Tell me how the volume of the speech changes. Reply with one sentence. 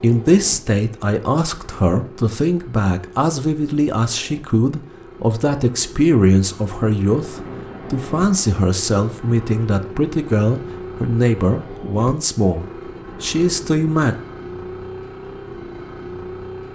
The loudness of the speech stays about the same.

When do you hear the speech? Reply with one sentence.
The speech can be heard from 0.0 to 14.2 s.